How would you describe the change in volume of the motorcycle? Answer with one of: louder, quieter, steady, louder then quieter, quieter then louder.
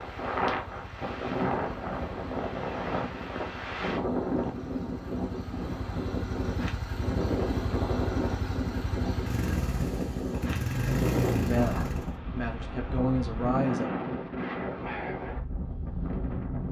louder.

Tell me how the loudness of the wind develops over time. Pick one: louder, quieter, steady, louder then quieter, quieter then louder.
steady.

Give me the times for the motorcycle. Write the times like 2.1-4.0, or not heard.
0.0-12.2.